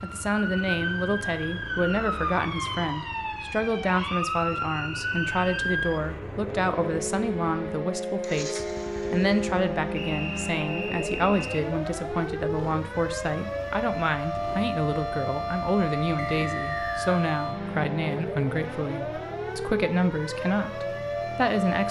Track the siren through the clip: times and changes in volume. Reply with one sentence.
You can hear the siren from 0.0 to 21.8 s, at a steady volume.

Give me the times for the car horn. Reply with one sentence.
You can't hear the car horn here.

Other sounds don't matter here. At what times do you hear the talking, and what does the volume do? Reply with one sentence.
The talking can be heard from 0.0 to 21.8 s, at a steady volume.